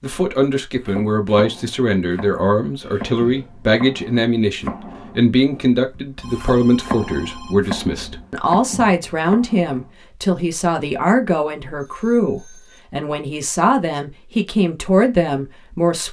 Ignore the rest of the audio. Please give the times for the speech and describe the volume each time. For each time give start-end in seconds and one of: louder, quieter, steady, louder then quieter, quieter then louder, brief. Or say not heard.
0.0-16.0 steady.